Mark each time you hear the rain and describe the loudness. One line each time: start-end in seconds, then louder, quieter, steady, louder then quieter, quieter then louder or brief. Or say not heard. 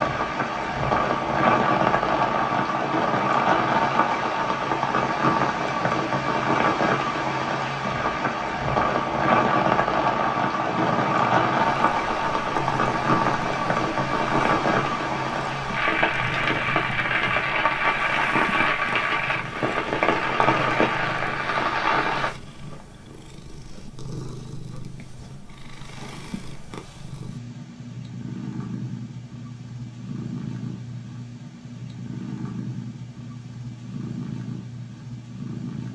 0.0-22.3 steady.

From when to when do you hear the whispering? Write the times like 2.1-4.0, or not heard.
not heard.